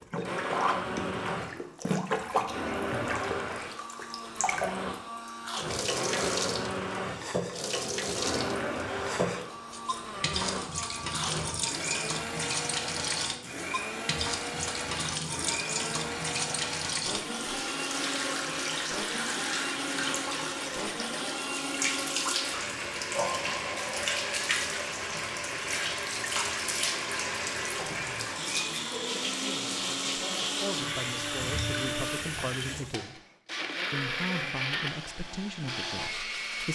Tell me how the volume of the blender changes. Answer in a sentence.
The volume of the blender stays about the same.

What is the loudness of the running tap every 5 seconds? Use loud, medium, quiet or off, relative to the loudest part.
loud, loud, loud, loud, loud, loud, loud, off.